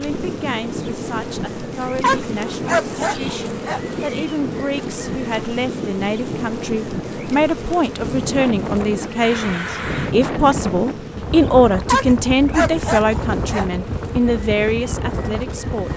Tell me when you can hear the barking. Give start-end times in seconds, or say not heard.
2.0-3.8, 11.9-13.7.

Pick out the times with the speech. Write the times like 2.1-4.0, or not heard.
0.0-15.9.